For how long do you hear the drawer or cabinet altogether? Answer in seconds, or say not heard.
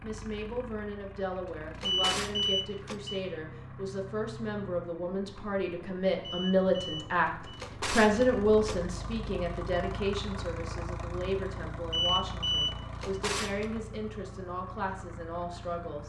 4 s.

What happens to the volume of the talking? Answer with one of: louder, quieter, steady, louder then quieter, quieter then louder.
louder then quieter.